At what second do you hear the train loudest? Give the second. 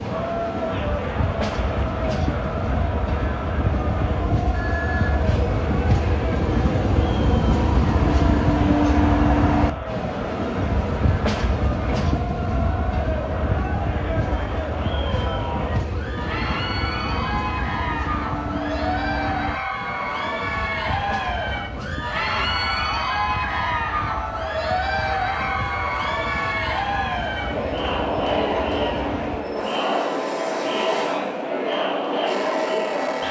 9 s.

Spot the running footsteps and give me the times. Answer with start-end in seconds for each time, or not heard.
not heard.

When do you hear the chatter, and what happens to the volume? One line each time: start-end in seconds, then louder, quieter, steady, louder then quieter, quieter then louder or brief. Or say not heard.
0.0-33.2 louder.